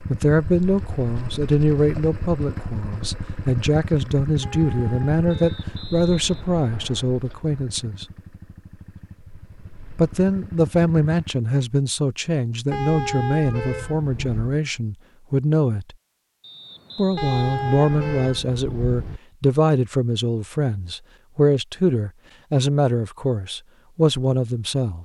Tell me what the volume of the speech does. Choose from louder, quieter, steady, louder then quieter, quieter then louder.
steady.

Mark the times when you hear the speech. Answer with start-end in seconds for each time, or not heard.
0.1-8.1, 9.9-15.9, 16.9-25.0.